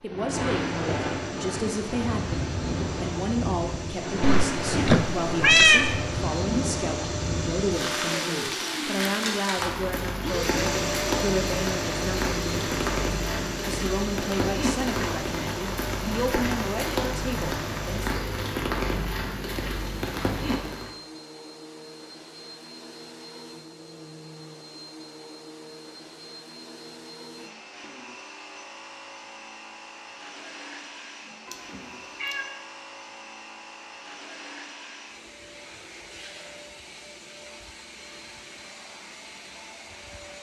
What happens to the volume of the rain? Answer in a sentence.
The loudness of the rain stays about the same.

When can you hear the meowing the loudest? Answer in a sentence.
The loudest moment of the meowing is at 6 seconds.